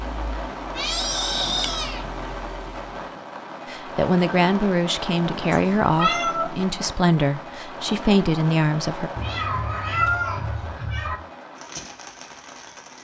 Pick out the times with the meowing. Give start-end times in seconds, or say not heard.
0.8-2.0, 5.5-6.7, 9.2-11.2.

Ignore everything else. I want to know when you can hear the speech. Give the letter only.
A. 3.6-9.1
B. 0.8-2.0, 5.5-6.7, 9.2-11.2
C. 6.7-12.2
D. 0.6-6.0
A.